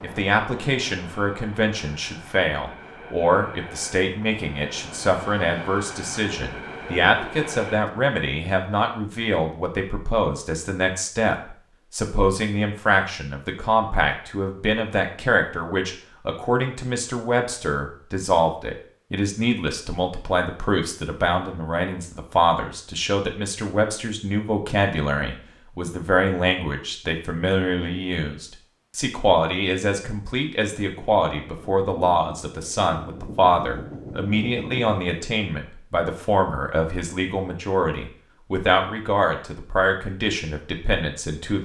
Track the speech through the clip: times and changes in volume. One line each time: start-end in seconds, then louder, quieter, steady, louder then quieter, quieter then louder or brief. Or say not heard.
0.0-41.6 steady.